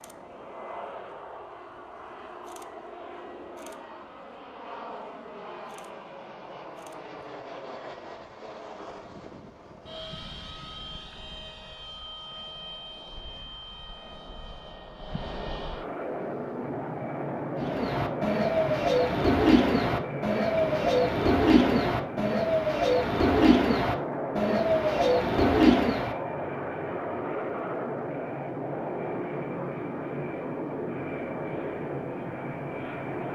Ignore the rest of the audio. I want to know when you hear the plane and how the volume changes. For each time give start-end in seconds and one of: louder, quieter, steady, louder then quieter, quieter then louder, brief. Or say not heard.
0.0-33.3 louder.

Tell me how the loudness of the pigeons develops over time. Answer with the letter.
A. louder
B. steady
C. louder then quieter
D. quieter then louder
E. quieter
B.